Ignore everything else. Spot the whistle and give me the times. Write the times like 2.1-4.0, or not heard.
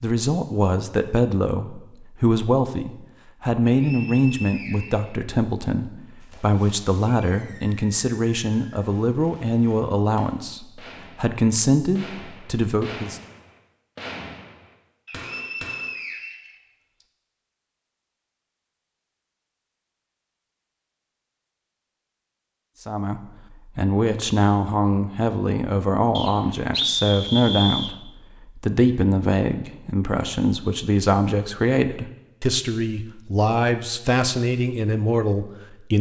3.6-5.2, 15.1-17.1, 26.1-27.9.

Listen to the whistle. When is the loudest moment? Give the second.
27 s.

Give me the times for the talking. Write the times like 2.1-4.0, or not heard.
0.0-13.2, 22.8-35.9.